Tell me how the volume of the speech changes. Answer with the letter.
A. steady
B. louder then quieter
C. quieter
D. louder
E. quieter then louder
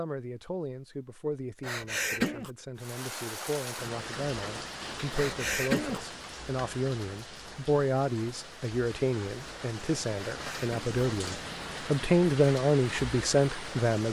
D.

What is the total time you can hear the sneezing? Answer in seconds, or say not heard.
2 s.